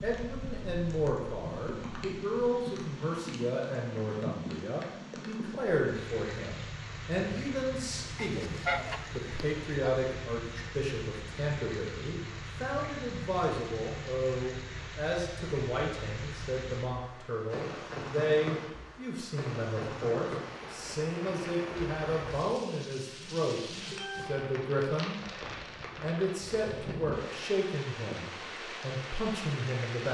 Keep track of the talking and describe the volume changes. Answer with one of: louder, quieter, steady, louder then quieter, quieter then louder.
steady.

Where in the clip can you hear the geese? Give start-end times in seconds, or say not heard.
8.2-9.8.